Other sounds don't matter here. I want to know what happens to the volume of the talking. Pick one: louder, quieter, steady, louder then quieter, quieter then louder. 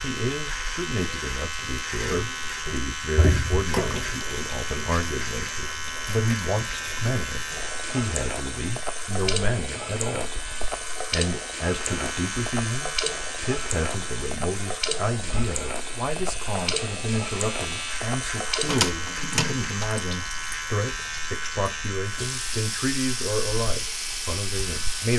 steady.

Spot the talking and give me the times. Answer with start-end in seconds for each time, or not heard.
0.0-10.4, 11.1-25.1.